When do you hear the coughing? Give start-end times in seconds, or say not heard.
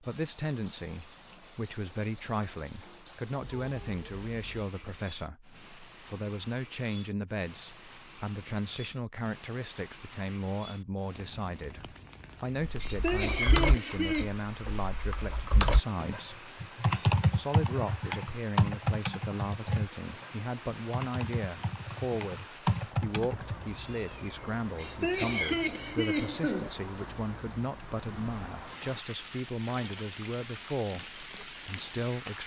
12.8-14.3, 24.8-26.7.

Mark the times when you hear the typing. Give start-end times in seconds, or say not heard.
12.6-23.6.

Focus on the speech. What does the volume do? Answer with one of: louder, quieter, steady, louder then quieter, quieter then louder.
steady.